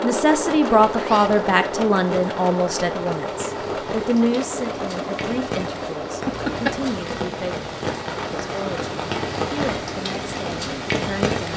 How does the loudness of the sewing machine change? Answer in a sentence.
The loudness of the sewing machine goes down.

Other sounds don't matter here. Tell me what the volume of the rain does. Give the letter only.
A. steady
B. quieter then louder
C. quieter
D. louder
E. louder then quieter
D.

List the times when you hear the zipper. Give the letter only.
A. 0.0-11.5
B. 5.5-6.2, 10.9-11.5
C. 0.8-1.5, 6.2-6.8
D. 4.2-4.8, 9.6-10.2
C.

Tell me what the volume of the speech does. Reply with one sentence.
The loudness of the speech goes down.